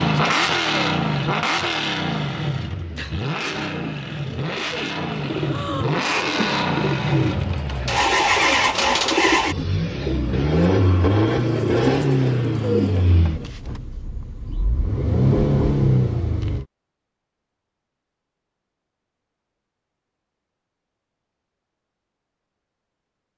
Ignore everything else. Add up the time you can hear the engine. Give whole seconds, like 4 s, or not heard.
17 s.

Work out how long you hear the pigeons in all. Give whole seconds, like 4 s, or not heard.
10 s.